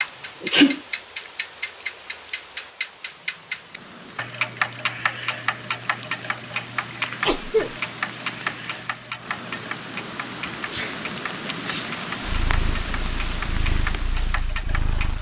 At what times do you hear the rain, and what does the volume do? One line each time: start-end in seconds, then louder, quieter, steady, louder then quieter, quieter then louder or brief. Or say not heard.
0.0-15.1 louder.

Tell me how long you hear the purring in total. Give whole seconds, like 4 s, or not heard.
3 s.